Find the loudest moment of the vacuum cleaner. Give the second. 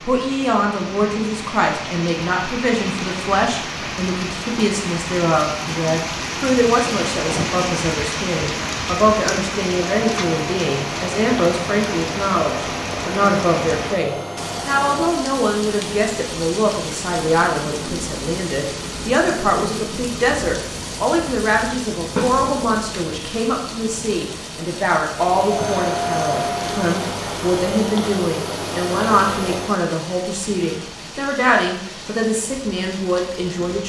26 s.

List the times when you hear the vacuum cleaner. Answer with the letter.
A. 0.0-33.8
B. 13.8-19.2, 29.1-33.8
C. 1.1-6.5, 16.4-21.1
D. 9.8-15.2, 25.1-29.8
D.